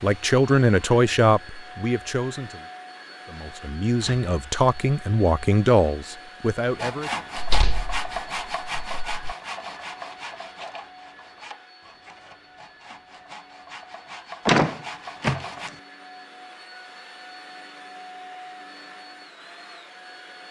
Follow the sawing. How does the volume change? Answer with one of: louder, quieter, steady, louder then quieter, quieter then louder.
quieter then louder.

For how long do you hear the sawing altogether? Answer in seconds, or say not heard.
9 s.